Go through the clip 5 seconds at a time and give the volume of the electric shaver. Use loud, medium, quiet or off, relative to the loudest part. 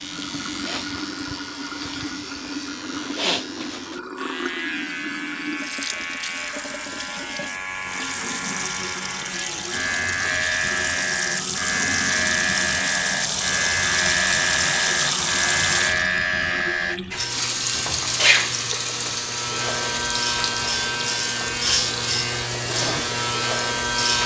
medium, medium, loud, loud, loud.